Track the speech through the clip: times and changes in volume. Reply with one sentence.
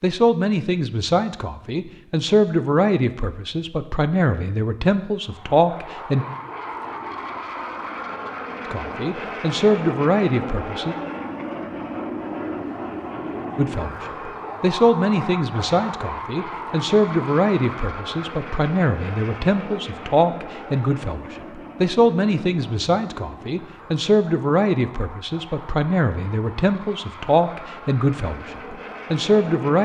You can hear the speech from 0.0 to 6.2 s, at a steady volume; briefly from 8.7 to 10.9 s; and from 13.6 to 29.8 s, at a steady volume.